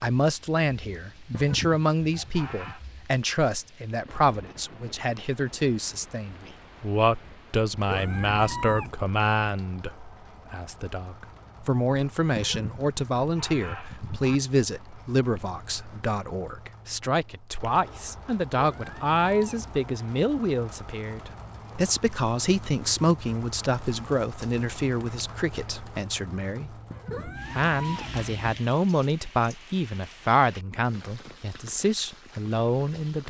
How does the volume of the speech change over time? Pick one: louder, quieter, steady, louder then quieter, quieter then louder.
steady.